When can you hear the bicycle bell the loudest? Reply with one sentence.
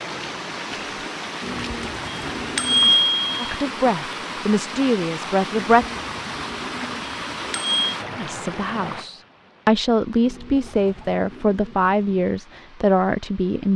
The volume of the bicycle bell peaks at 3 seconds.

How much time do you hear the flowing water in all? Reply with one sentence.
The flowing water can be heard for 14 seconds in total.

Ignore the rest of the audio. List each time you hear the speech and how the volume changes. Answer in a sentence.
The speech can be heard briefly from 3.4 to 5.8 s; and from 8.2 to 13.7 s, getting louder.